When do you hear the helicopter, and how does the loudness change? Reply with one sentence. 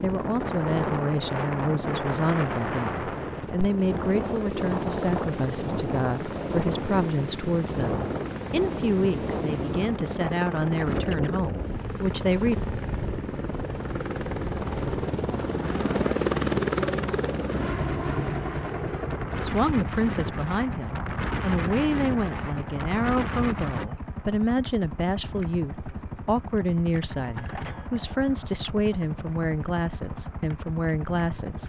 The helicopter can be heard from 0.0 to 31.6 s, getting louder then quieter.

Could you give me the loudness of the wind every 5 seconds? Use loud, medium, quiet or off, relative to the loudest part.
loud, loud, loud, medium, loud, off, off.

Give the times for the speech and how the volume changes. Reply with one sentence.
You can hear the speech from 0.0 to 12.6 s, at a steady volume; and from 19.4 to 31.6 s, at a steady volume.